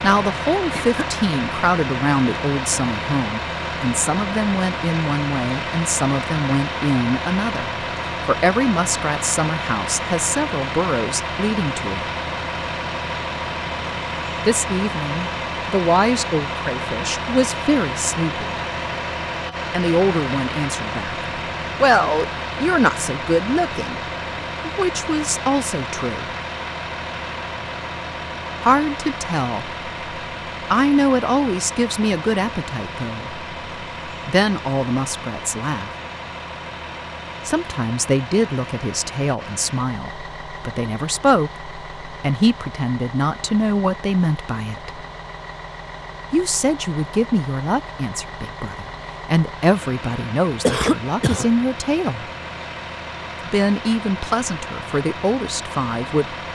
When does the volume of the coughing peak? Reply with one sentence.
The volume of the coughing peaks at 51 seconds.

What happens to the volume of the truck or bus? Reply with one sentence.
The volume of the truck or bus goes down.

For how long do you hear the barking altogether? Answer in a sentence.
The barking can't be heard in this clip.